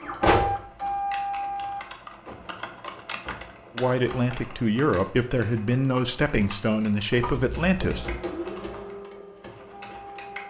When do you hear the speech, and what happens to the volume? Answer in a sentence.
The speech can be heard from 3.8 to 8.1 s, at a steady volume.